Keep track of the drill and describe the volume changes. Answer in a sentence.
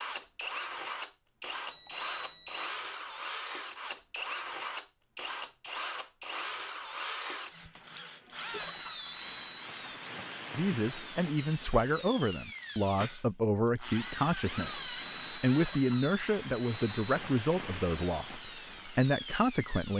The loudness of the drill stays about the same.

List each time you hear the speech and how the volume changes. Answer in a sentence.
You can hear the speech from 10.6 to 19.9 s, at a steady volume.